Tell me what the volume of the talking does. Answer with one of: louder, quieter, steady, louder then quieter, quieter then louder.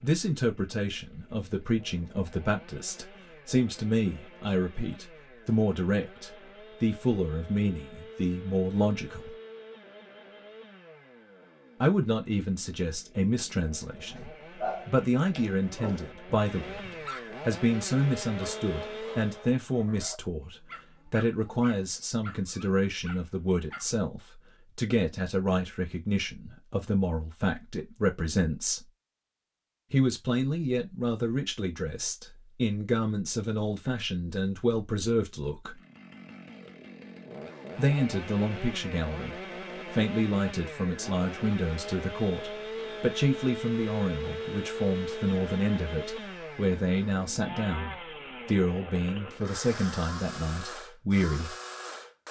steady.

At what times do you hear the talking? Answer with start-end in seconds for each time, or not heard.
0.0-9.3, 11.8-28.9, 29.9-35.8, 37.8-51.5.